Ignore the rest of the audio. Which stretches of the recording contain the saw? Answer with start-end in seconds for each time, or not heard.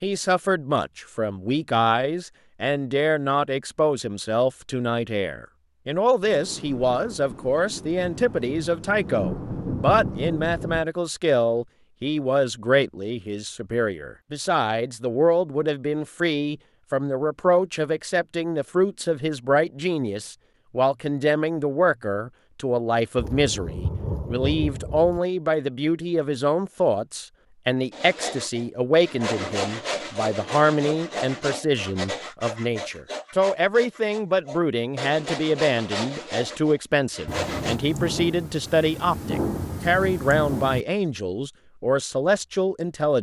27.9-37.8.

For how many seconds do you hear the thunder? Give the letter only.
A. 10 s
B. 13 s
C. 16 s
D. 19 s
A.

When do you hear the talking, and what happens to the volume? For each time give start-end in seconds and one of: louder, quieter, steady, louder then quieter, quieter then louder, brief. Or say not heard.
0.0-43.1 steady.